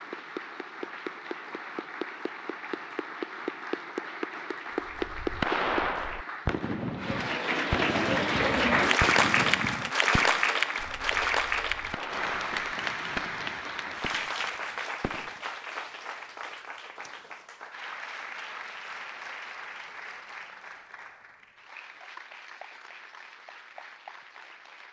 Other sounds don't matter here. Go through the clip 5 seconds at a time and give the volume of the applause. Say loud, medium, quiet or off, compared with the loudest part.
medium, loud, loud, quiet, quiet.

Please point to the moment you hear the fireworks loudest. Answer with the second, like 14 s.
6 s.